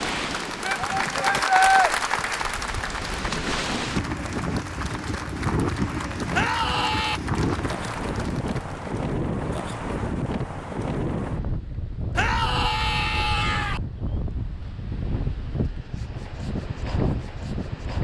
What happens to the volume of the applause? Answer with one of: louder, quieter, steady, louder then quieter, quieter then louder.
quieter.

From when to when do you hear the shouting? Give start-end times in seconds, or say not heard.
0.7-1.9, 6.3-7.2, 12.2-13.8.